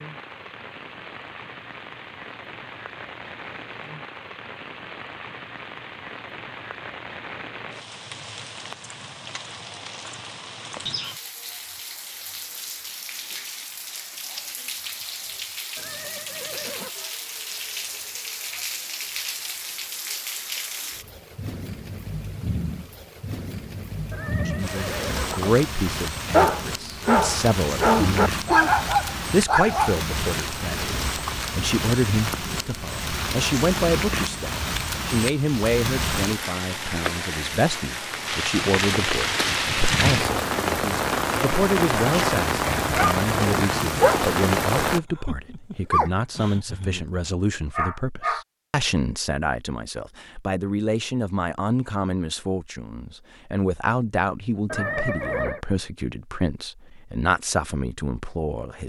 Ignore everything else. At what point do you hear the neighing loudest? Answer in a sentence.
The volume of the neighing peaks at 55 seconds.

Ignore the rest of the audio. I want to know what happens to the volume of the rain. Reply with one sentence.
The volume of the rain goes up.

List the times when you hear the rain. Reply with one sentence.
You can hear the rain from 0.0 to 45.0 s.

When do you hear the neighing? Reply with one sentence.
The neighing can be heard from 15.8 to 16.9 s, from 24.1 to 25.6 s and from 54.6 to 55.6 s.